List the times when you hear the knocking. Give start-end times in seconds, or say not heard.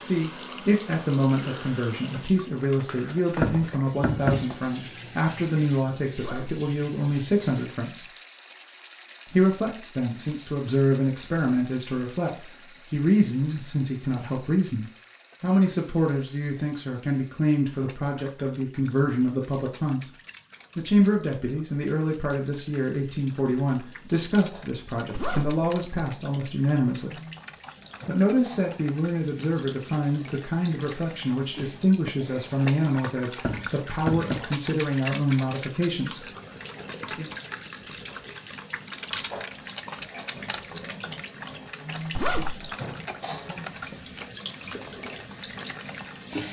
3.3-4.5, 33.4-34.5.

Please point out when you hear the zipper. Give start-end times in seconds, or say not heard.
6.2-6.7, 25.1-25.6, 42.1-42.7.